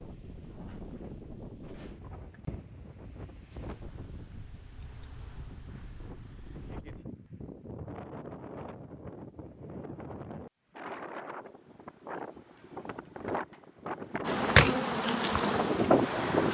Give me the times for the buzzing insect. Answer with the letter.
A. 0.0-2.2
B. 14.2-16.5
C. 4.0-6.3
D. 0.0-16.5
B.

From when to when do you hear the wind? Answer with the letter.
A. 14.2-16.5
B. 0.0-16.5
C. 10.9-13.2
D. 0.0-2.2
B.